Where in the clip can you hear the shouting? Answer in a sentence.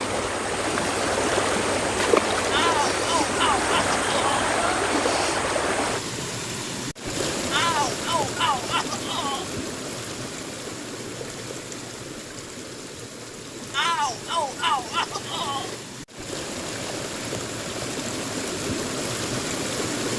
The shouting can be heard from 2.5 to 4.3 s, from 7.5 to 9.5 s and from 13.7 to 15.7 s.